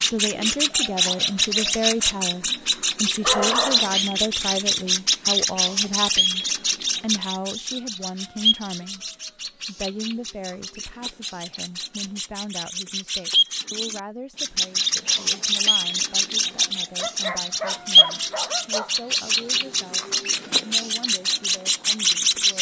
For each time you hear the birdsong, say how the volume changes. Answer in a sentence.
The birdsong can be heard from 0.0 to 22.5 s, getting quieter then louder.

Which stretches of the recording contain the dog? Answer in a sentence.
The dog can be heard from 2.5 to 4.1 s and from 16.9 to 19.0 s.